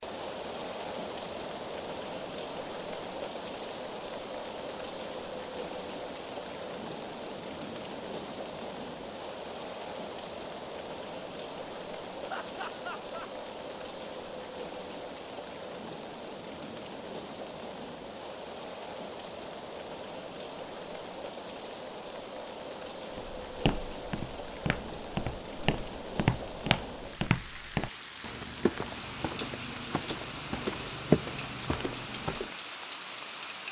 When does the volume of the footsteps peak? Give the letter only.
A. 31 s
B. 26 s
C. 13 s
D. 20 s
A.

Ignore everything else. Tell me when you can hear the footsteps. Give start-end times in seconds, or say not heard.
23.1-32.5.